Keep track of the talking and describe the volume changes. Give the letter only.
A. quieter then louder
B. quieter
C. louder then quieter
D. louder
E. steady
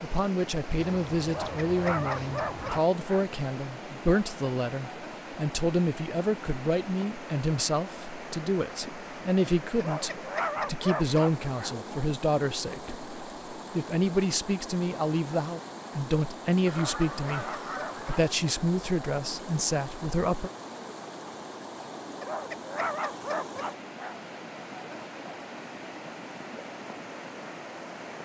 E.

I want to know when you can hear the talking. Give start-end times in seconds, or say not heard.
0.0-20.5.